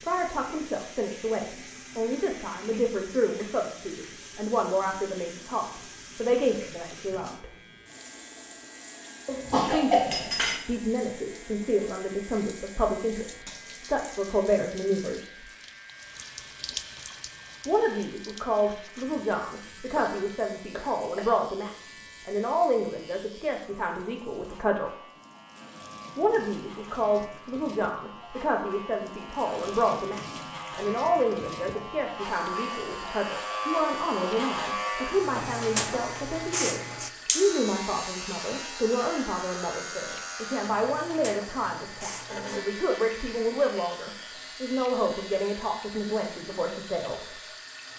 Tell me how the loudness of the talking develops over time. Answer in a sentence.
The volume of the talking stays about the same.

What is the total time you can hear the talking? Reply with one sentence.
You can hear the talking for 42 seconds altogether.